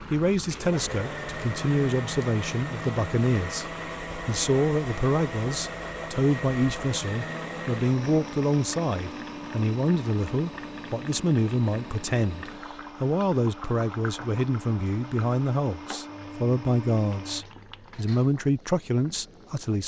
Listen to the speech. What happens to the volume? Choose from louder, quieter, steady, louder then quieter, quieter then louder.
steady.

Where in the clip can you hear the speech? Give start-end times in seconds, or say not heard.
0.1-19.8.